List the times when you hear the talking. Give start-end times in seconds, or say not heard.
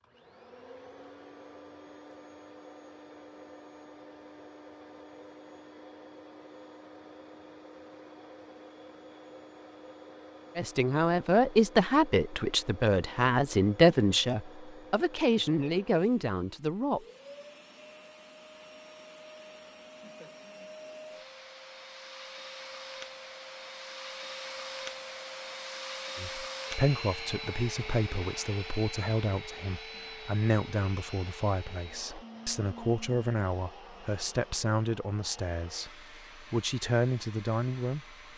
10.6-17.1, 26.1-38.1.